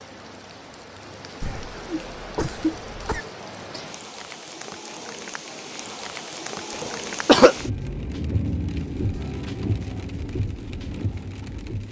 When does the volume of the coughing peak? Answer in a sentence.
The loudest moment of the coughing is at 7 seconds.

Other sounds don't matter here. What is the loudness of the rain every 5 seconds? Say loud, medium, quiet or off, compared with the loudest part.
medium, loud, loud.